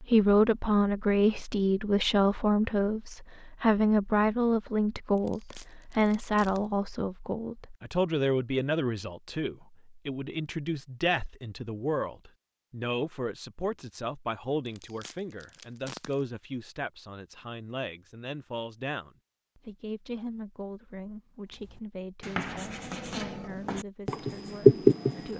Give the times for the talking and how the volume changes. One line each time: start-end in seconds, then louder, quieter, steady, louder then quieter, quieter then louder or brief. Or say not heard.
0.0-25.3 quieter.